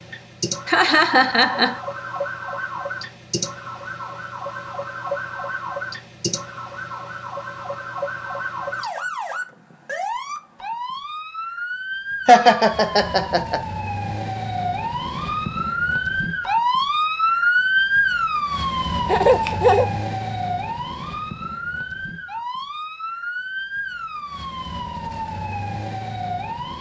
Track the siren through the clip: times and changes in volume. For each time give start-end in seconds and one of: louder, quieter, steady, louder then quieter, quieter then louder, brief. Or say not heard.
0.0-26.7 louder then quieter.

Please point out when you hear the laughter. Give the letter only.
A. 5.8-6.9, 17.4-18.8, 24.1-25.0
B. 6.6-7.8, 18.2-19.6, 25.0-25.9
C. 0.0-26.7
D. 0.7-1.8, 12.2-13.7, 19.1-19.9
D.